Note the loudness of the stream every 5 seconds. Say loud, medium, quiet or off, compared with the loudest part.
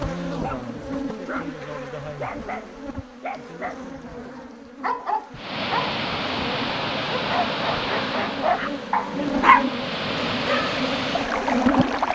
off, loud, loud.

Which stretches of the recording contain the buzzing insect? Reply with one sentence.
You can hear the buzzing insect from 0.0 to 12.1 s.